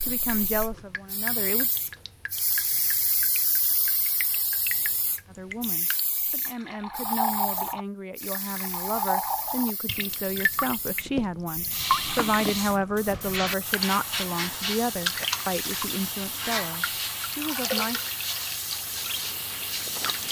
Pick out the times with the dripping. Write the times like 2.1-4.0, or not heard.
0.0-20.2.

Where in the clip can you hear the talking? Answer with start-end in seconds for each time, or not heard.
0.1-1.7, 5.2-18.0.